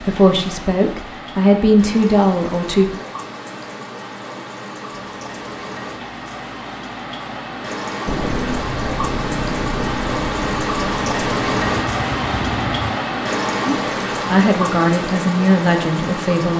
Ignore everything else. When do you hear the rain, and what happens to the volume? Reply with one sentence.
The rain can be heard from 0.0 to 16.5 s, getting louder.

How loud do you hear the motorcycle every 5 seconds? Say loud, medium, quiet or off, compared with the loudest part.
off, loud, loud, off.